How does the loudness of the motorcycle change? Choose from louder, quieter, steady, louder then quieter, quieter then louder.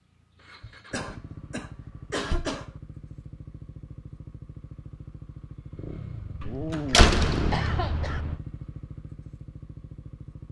louder then quieter.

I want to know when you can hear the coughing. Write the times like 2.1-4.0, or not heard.
0.9-2.7, 6.8-8.2.